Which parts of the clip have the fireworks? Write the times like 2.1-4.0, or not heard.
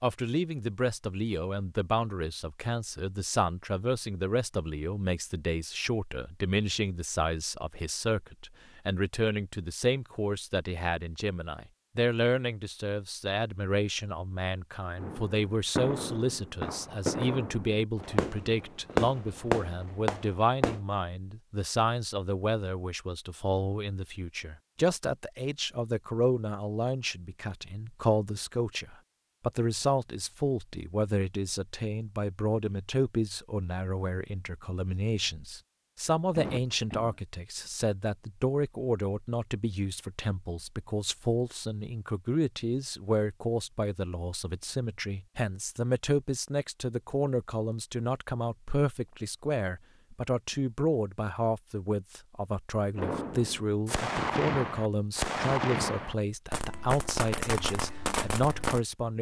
14.9-20.8, 53.0-58.8.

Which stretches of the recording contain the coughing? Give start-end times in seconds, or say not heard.
36.4-37.1.